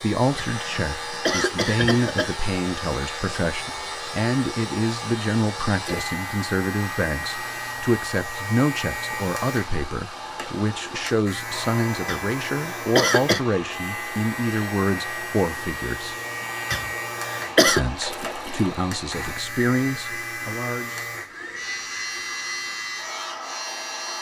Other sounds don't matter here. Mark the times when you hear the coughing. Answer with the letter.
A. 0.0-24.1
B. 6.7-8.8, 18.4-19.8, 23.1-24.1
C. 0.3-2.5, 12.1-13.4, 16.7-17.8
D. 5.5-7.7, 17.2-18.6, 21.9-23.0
C.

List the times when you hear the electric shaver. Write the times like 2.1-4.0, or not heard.
0.0-24.1.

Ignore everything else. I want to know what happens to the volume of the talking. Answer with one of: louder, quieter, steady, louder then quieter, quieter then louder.
steady.